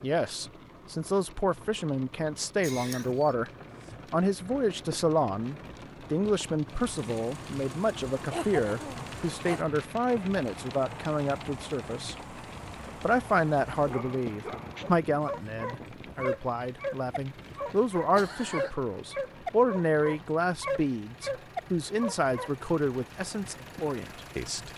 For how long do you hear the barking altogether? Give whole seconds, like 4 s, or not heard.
9 s.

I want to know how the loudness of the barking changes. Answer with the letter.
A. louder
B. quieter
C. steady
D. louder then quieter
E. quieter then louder
A.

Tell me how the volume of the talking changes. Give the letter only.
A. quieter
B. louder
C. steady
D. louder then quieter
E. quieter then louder
C.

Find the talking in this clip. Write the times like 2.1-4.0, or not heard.
0.0-3.5, 4.1-12.2, 13.0-24.7.